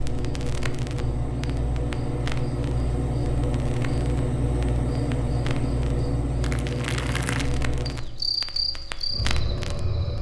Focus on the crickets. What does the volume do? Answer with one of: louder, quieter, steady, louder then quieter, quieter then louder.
steady.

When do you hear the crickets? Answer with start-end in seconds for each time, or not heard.
0.0-10.1.